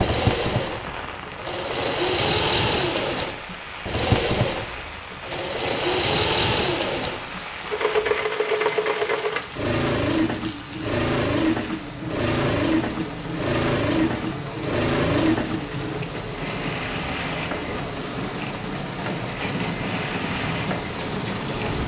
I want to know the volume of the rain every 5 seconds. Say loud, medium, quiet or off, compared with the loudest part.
medium, medium, medium, loud, loud.